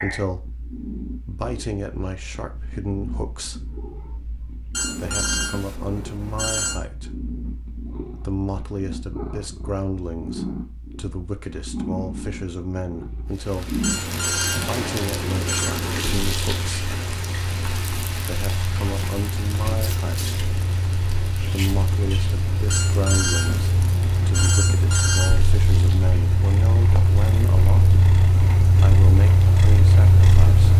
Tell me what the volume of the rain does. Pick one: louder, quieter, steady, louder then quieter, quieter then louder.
quieter.